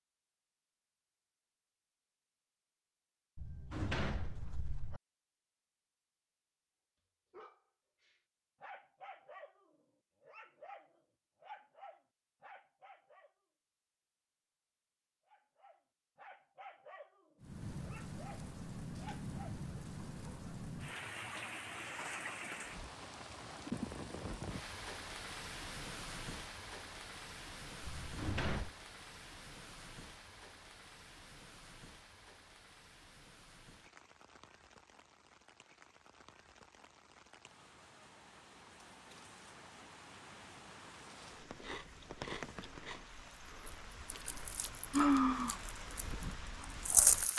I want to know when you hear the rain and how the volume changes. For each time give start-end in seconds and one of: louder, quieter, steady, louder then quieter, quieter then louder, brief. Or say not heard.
17.4-47.3 quieter then louder.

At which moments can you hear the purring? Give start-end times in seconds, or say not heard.
not heard.